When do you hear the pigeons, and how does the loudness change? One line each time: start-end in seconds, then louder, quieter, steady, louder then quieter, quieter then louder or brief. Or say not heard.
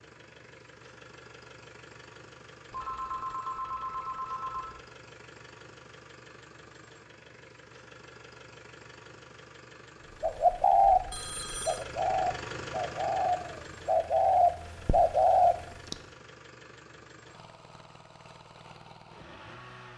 10.2-15.9 quieter then louder.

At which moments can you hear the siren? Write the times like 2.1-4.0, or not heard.
not heard.